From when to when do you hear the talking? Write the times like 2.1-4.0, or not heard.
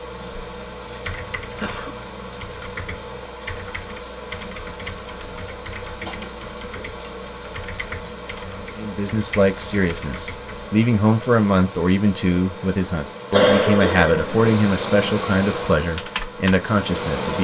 8.8-17.3.